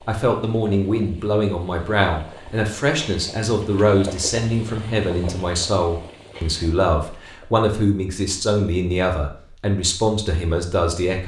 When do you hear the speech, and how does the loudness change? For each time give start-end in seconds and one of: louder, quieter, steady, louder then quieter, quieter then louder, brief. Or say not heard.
0.1-11.2 steady.